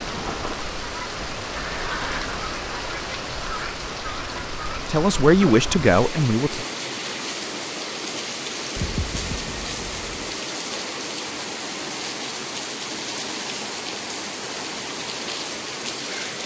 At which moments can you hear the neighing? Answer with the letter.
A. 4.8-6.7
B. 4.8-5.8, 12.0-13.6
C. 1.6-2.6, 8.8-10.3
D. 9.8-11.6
C.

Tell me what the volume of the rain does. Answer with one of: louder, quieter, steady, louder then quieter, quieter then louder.
steady.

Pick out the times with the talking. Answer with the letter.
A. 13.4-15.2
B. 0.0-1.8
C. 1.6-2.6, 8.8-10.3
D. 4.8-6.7
D.